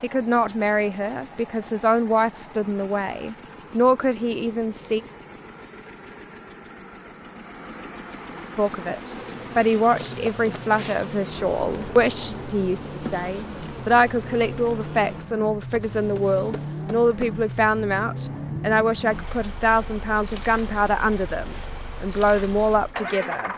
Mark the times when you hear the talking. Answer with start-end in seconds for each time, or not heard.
0.0-5.0, 8.6-23.5.